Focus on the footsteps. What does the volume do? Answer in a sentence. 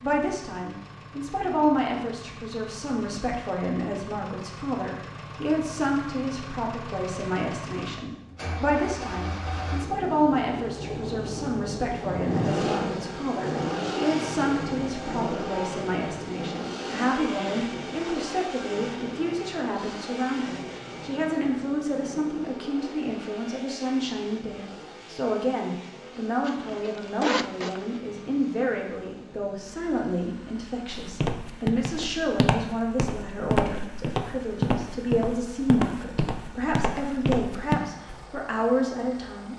The loudness of the footsteps stays about the same.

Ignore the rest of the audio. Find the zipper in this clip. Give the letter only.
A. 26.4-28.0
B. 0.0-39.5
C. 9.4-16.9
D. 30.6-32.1
A.